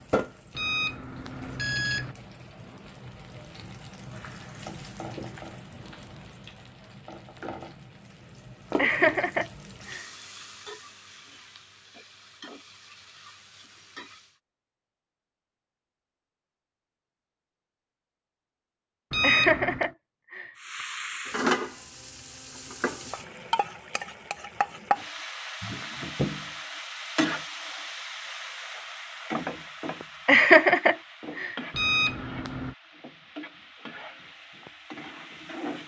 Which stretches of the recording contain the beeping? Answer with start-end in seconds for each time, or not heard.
0.6-2.1, 19.1-19.9, 31.8-32.7.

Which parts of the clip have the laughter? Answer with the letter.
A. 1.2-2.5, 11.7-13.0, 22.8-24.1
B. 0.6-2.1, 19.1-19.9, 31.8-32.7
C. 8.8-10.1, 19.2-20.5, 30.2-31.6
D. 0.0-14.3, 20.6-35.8
C.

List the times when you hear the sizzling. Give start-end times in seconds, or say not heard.
0.0-14.3, 20.6-35.8.